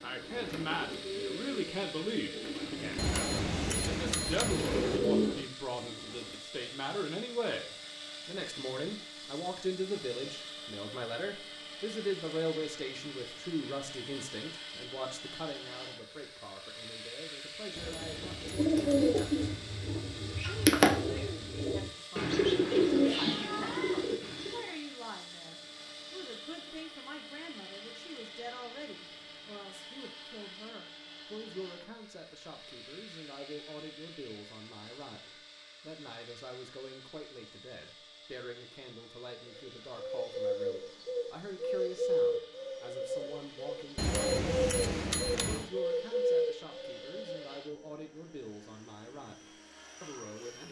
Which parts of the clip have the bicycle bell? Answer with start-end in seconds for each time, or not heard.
3.0-5.0, 17.8-19.8, 44.0-45.7.